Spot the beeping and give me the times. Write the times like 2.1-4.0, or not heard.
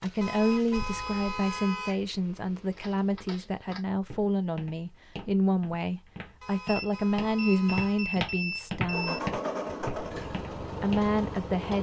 6.7-9.2.